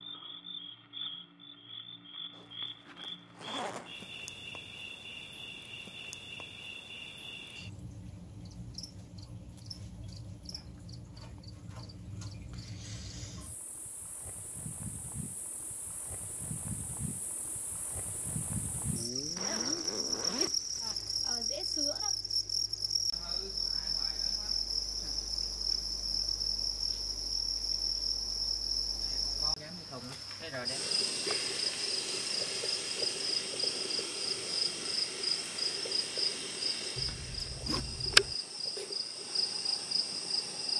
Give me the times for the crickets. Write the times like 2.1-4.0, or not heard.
0.0-40.7.